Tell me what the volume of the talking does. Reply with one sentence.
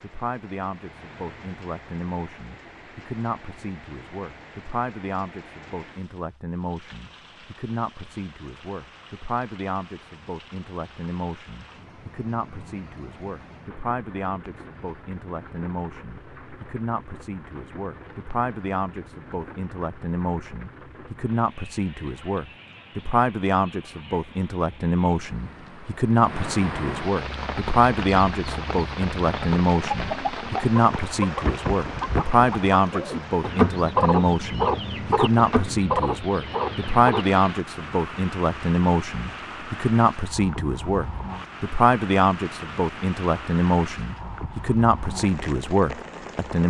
The loudness of the talking goes up.